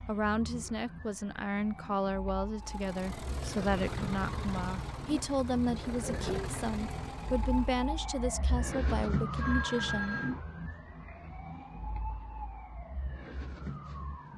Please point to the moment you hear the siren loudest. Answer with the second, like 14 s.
9 s.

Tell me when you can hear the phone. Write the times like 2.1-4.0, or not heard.
9.4-10.3.